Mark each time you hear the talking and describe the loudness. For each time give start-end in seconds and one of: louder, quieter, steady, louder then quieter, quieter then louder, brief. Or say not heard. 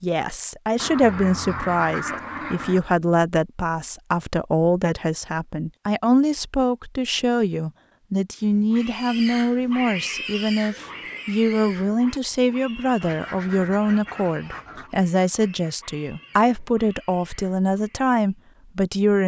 0.0-19.2 steady.